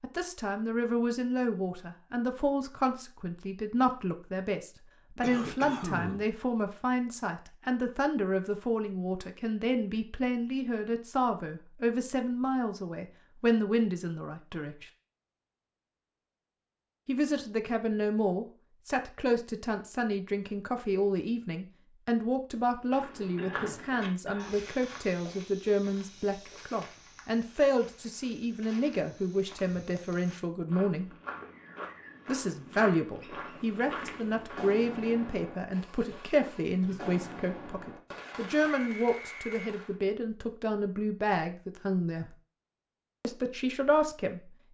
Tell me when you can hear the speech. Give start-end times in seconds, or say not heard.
0.0-14.8, 17.1-31.1, 32.2-42.4, 43.2-44.4.